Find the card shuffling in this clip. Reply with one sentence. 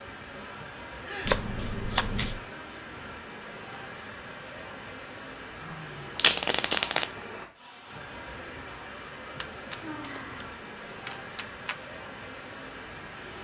You can hear the card shuffling from 1.2 to 2.4 s, from 6.2 to 7.2 s and from 9.3 to 11.8 s.